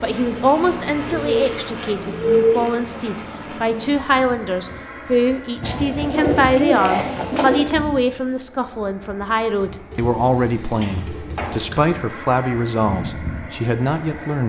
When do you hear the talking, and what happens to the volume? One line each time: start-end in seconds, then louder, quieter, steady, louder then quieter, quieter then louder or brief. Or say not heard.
0.0-14.4 steady.